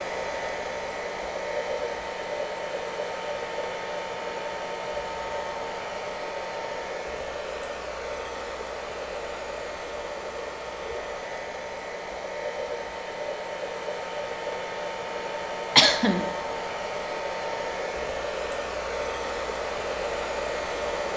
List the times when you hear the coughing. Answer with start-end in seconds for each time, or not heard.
15.8-16.2.